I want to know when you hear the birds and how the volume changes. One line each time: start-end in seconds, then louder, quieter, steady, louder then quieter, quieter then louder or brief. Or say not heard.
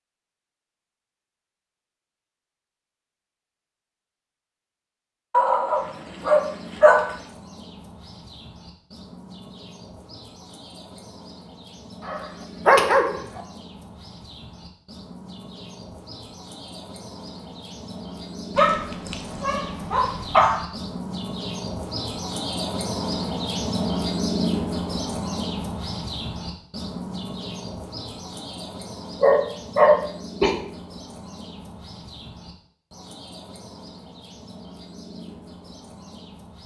5.6-36.6 louder then quieter.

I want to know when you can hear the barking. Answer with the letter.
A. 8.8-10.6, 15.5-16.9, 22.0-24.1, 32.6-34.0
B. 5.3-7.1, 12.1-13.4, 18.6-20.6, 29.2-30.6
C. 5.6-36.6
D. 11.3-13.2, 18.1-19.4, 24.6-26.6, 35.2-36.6
B.